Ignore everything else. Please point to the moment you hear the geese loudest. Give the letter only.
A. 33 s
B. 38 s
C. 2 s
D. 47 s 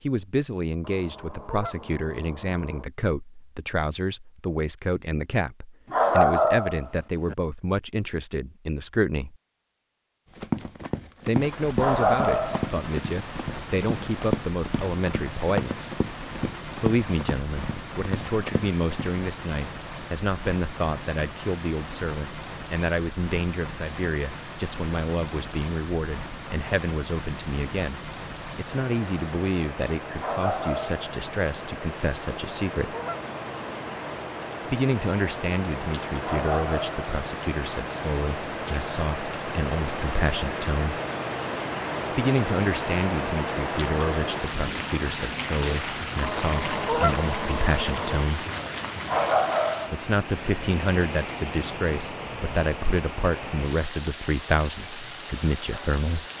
D.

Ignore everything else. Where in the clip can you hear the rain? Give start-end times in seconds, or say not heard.
11.2-56.3.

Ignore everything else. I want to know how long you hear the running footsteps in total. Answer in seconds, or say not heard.
9 s.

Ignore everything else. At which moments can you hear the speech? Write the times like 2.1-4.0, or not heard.
0.0-9.3, 11.2-15.9, 16.8-33.0, 34.6-41.0, 42.1-48.5, 49.9-56.2.